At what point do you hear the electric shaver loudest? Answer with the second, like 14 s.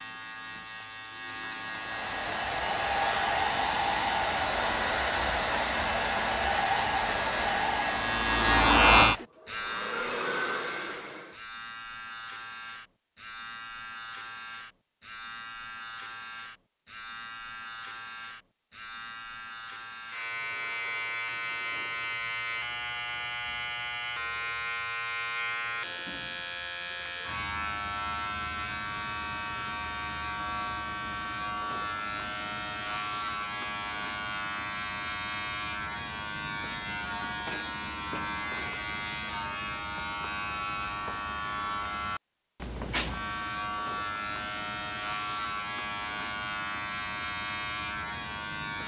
9 s.